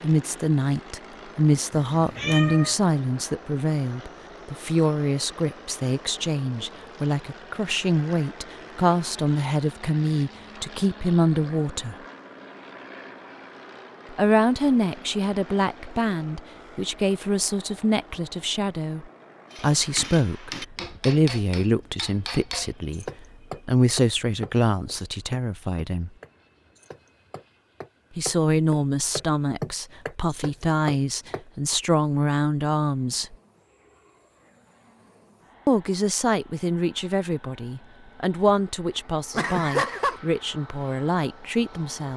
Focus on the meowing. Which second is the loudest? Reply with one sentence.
The volume of the meowing peaks at 40 seconds.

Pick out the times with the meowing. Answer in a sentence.
The meowing can be heard from 1.7 to 2.8 s and from 39.3 to 40.2 s.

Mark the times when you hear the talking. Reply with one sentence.
The talking can be heard from 0.0 to 11.9 s, from 14.1 to 26.1 s, from 28.1 to 33.4 s and from 35.6 to 42.1 s.